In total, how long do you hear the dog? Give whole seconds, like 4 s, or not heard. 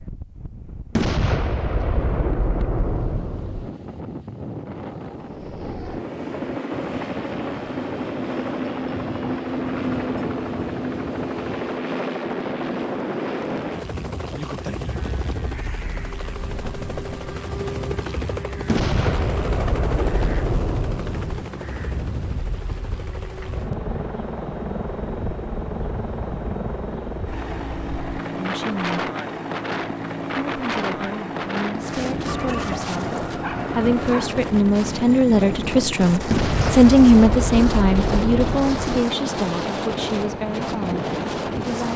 2 s.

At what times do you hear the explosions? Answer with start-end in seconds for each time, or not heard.
0.9-3.7, 18.6-21.4, 36.3-39.0.